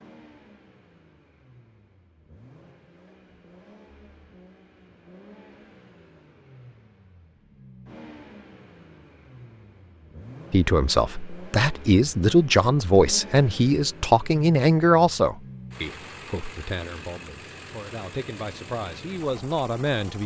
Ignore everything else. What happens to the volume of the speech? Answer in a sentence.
The volume of the speech goes down, then up.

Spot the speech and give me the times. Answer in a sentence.
The speech can be heard from 10.5 to 20.2 s.